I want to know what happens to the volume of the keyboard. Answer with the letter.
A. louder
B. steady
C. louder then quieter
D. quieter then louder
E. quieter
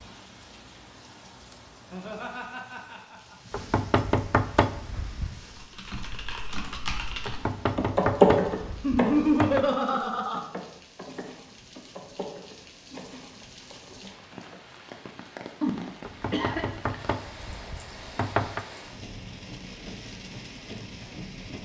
C.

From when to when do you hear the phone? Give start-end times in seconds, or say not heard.
not heard.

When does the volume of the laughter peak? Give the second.
9 s.